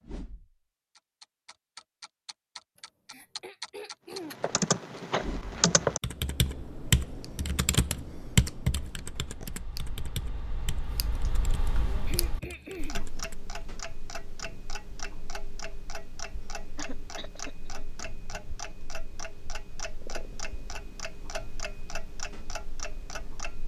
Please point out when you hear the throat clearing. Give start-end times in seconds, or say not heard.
2.8-4.4, 12.1-13.1, 16.8-17.9.